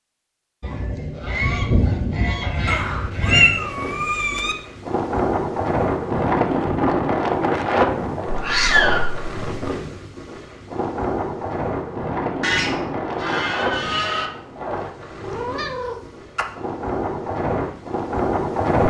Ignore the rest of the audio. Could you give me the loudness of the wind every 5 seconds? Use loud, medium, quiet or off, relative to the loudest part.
medium, loud, medium, loud.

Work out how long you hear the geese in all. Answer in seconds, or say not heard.
5 s.